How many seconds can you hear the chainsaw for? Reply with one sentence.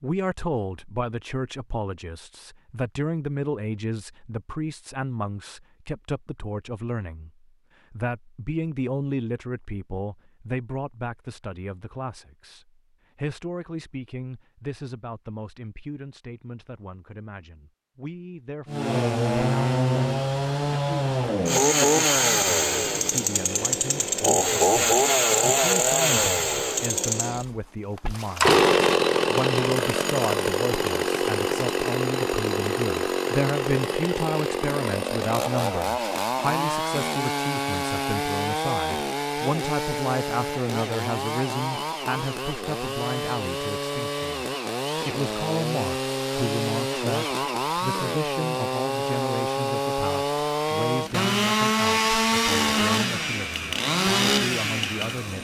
You can hear the chainsaw for 37 seconds altogether.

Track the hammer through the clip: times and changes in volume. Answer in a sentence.
The hammer can't be heard in this clip.